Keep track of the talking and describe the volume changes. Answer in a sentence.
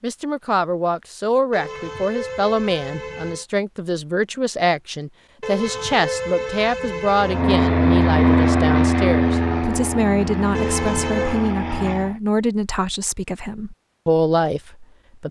The volume of the talking stays about the same.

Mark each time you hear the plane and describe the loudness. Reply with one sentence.
You can hear the plane from 7.2 to 12.2 s, getting quieter.